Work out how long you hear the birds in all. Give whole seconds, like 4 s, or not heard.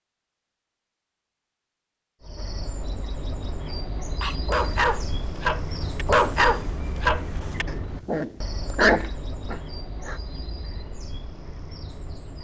10 s.